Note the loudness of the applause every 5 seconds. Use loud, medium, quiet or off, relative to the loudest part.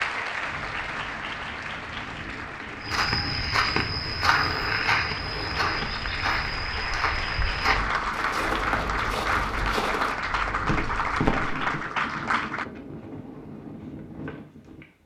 medium, loud, loud.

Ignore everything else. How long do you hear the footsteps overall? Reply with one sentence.
The footsteps can be heard for 9 seconds in total.